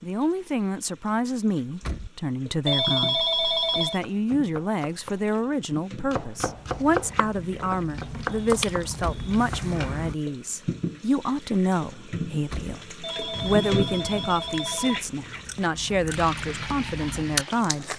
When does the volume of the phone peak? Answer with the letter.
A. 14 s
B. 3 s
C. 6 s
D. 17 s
B.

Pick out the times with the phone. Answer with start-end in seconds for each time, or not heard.
2.6-4.0, 13.0-15.1.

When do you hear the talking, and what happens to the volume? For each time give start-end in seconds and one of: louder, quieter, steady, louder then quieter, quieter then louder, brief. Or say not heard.
0.0-17.9 steady.